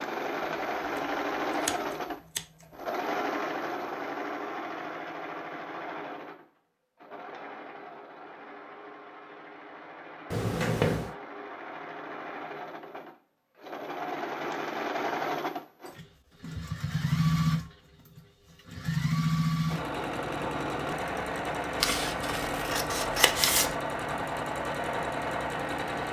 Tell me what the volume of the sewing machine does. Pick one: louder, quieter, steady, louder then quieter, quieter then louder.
quieter then louder.